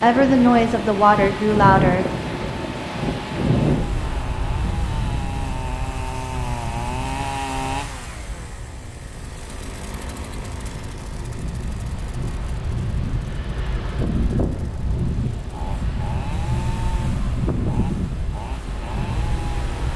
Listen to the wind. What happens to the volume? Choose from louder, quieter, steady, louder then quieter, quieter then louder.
quieter then louder.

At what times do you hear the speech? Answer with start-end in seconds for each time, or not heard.
0.0-2.0.